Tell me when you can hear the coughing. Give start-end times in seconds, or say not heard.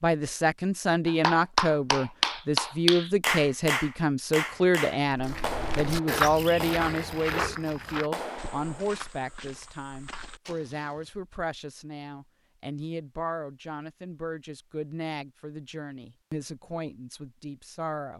not heard.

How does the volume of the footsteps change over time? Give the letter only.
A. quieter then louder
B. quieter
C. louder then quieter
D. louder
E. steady
B.